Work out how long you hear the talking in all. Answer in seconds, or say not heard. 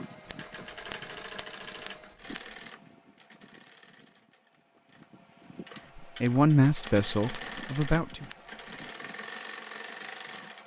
2 s.